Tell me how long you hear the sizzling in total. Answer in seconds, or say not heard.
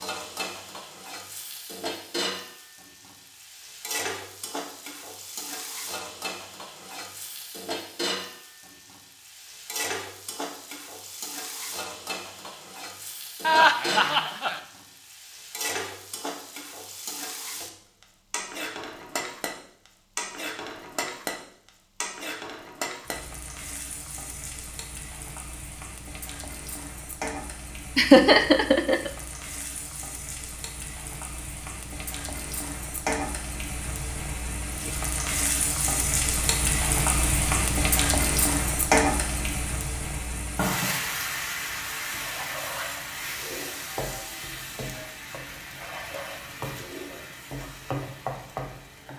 49 s.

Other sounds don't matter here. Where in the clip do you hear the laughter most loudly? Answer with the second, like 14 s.
28 s.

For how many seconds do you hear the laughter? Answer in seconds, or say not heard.
2 s.